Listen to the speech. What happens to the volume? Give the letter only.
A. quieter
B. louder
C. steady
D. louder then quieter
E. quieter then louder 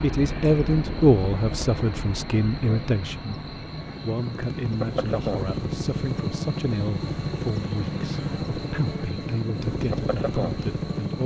A.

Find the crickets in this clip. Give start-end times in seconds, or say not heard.
0.0-11.2.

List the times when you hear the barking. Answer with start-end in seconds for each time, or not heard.
not heard.